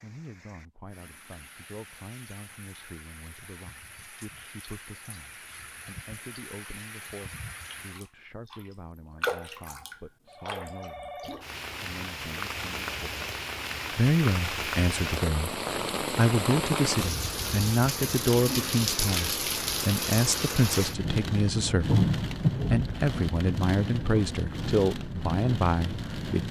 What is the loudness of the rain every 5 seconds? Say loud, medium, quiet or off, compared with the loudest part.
quiet, medium, medium, loud, loud, medium.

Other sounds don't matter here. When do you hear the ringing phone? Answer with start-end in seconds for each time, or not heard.
10.2-11.5.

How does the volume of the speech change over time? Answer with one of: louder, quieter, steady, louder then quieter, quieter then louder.
louder.